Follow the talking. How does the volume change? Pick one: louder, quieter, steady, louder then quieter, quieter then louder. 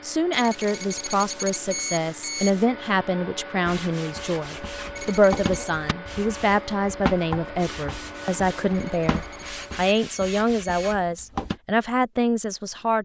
steady.